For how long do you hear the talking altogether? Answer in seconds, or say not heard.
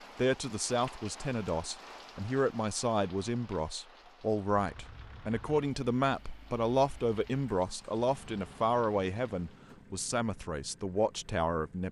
12 s.